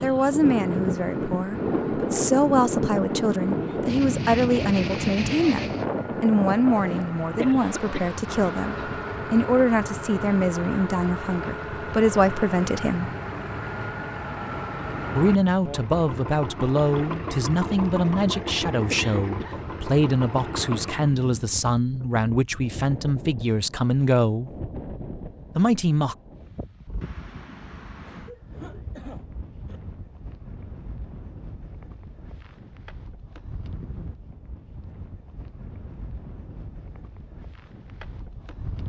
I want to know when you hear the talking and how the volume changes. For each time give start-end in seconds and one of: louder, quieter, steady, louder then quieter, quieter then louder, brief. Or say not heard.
0.0-13.1 steady
15.2-24.5 steady
25.6-26.1 brief.